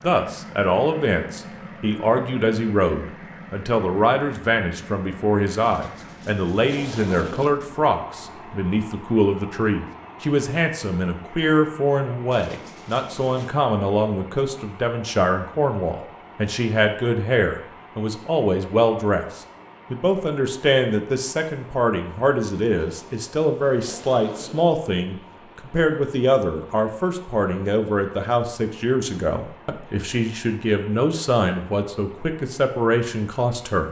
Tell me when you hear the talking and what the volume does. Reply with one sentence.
You can hear the talking from 0.0 to 33.8 s, at a steady volume.